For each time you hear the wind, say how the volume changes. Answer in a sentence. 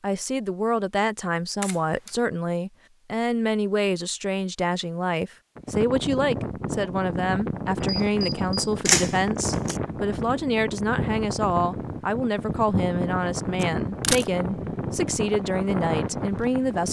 You can hear the wind from 5.5 to 16.8 s, at a steady volume.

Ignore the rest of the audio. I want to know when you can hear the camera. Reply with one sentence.
You can hear the camera from 1.6 to 2.1 s, from 7.8 to 9.8 s and from 13.6 to 14.2 s.